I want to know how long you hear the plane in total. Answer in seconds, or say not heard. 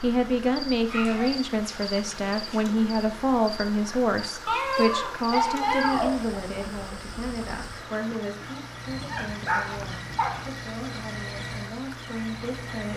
not heard.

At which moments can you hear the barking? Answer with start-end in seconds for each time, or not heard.
0.8-2.6, 4.5-6.4, 8.8-10.5.